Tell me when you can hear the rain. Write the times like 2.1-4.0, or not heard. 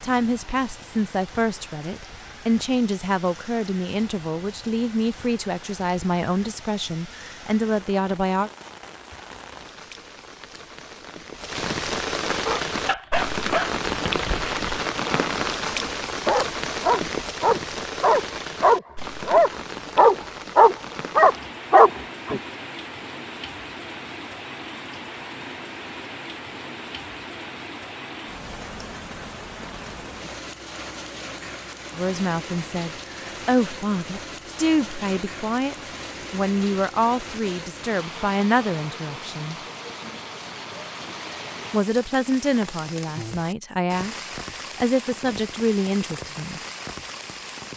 0.0-47.7.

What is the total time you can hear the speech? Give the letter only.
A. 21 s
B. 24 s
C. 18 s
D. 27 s
A.